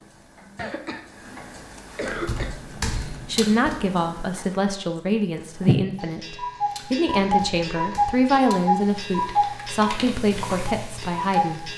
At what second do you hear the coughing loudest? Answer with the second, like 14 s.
2 s.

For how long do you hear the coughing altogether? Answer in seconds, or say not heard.
2 s.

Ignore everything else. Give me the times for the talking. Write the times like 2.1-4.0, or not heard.
3.2-11.7.